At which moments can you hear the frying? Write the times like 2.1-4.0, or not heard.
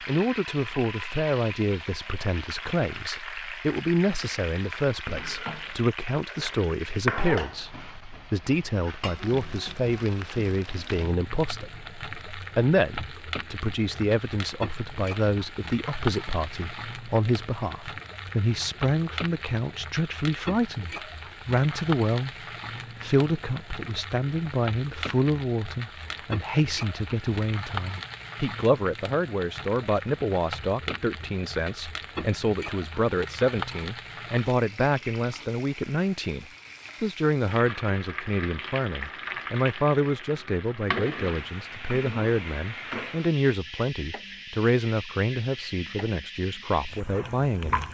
0.0-47.8.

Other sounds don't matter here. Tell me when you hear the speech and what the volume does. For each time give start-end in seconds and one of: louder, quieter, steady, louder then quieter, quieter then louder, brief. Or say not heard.
0.1-47.8 steady.